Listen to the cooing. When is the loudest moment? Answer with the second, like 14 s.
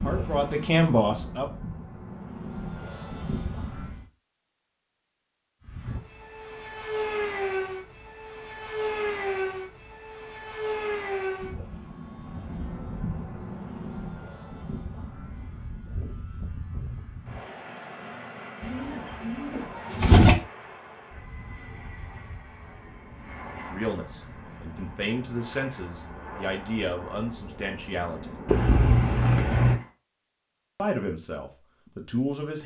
20 s.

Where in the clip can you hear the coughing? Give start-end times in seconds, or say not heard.
28.4-29.8.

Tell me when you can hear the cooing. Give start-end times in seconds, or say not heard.
18.6-20.4.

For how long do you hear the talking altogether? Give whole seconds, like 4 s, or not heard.
8 s.